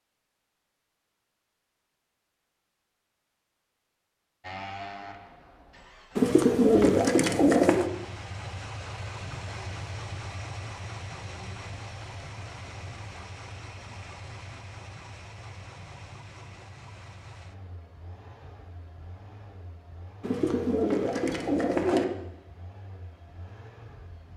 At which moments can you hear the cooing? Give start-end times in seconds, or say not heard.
6.2-7.9, 20.2-22.1.